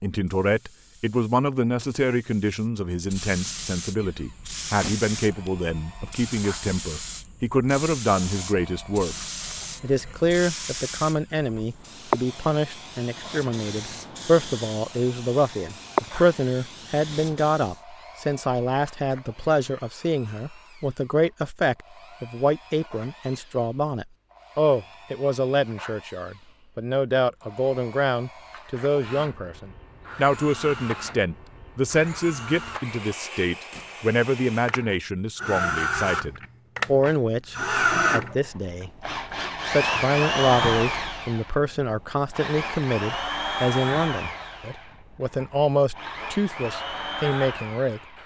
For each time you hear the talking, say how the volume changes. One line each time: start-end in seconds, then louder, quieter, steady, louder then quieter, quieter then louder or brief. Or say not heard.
0.0-38.9 steady
39.6-48.0 steady.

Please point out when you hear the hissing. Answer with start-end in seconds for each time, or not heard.
0.2-17.8.